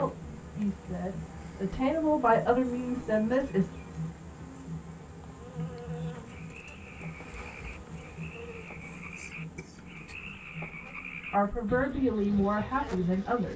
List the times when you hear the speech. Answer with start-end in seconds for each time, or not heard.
0.0-3.6, 11.3-13.5.